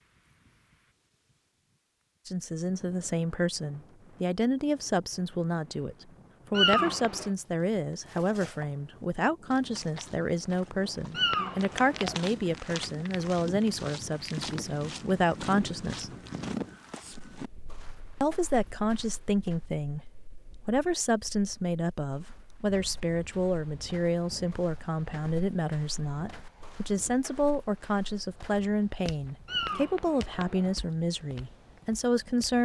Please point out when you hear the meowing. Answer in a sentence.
The meowing can be heard from 6.5 to 7.3 s, from 11.2 to 12.2 s and from 29.4 to 30.8 s.